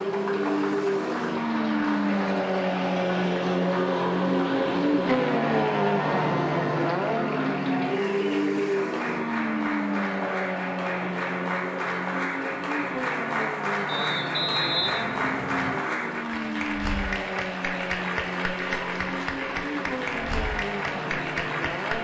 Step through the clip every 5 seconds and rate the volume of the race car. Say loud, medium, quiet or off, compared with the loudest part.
loud, loud, medium, medium, medium.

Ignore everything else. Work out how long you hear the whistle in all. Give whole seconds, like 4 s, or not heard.
2 s.